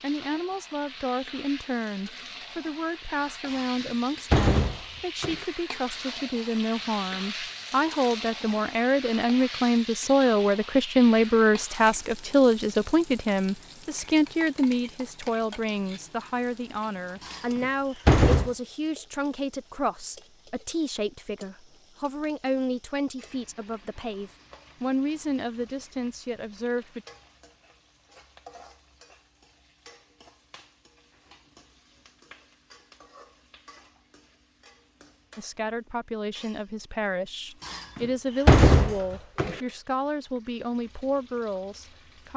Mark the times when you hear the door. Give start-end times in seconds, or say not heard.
3.5-5.5, 17.2-18.5, 37.6-39.6.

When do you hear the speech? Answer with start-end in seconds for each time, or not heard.
0.0-27.1, 35.4-42.3.